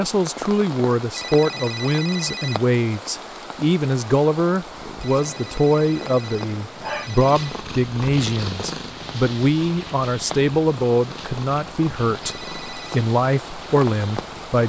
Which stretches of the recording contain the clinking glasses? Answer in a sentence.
You can't hear the clinking glasses here.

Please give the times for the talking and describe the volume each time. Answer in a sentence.
You can hear the talking from 0.0 to 14.6 s, at a steady volume.